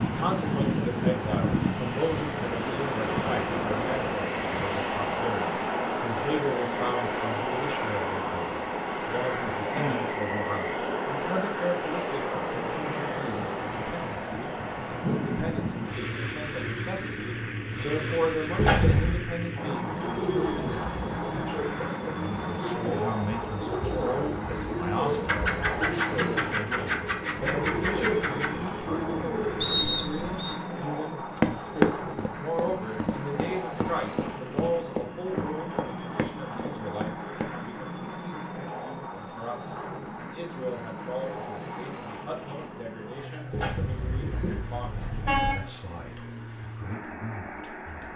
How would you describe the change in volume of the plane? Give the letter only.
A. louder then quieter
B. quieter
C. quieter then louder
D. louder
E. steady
B.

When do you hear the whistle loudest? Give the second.
30 s.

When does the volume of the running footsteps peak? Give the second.
32 s.